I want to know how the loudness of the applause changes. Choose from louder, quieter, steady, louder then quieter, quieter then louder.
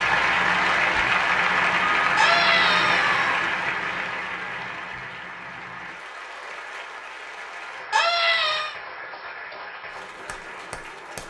quieter.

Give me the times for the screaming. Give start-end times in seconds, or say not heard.
2.1-3.4, 7.9-8.8.